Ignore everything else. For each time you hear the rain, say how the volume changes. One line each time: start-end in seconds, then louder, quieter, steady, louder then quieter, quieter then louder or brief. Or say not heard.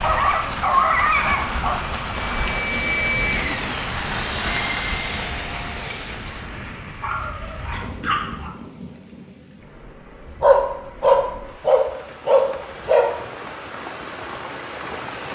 0.0-15.3 quieter then louder.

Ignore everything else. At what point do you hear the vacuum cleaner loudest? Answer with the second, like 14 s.
3 s.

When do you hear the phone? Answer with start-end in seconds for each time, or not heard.
not heard.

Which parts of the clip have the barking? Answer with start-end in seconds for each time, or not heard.
0.0-1.8, 7.0-8.5, 10.4-13.1.